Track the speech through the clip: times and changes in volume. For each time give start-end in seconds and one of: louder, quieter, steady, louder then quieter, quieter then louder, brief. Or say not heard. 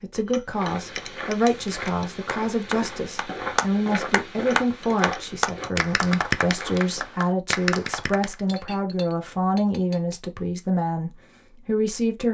0.0-12.2 steady.